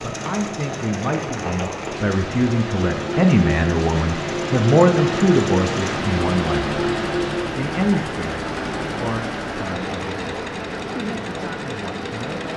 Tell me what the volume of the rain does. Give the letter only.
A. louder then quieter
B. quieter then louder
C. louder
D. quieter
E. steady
A.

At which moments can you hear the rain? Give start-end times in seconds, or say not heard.
0.0-12.5.